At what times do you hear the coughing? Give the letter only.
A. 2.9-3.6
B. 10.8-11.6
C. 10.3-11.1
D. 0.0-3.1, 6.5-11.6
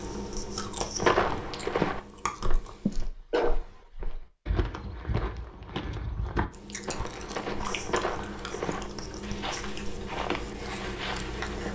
A.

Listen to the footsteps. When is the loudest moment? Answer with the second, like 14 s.
1 s.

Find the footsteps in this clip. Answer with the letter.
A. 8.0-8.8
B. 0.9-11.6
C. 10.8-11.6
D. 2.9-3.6
B.